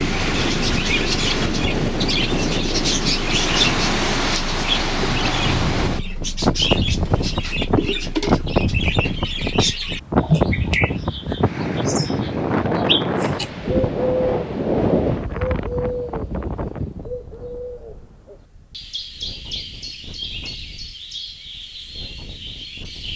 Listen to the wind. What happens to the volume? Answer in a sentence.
The volume of the wind goes down.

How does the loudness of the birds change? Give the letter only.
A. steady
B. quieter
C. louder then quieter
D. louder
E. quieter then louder
B.